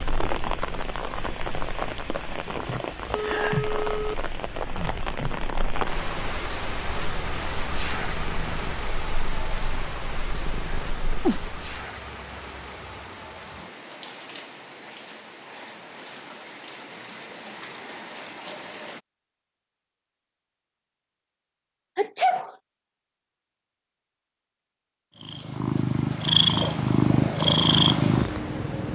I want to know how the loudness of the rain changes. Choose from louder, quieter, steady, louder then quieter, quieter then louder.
quieter.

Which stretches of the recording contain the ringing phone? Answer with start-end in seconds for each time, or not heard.
3.1-4.2.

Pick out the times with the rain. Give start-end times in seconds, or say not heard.
0.0-19.0.